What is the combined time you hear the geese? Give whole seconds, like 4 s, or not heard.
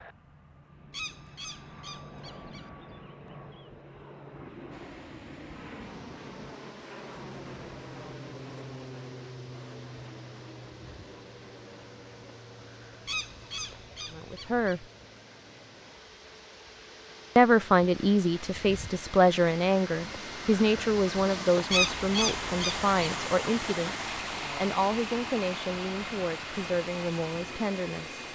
5 s.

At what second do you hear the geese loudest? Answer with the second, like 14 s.
22 s.